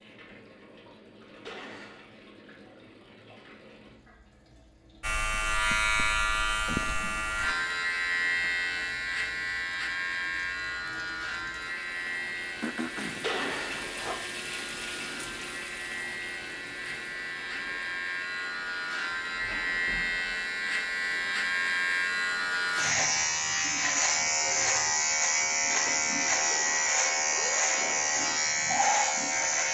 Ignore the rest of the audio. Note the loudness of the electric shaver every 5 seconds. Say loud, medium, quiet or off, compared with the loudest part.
off, loud, medium, medium, loud, loud.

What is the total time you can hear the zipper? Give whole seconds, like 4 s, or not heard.
3 s.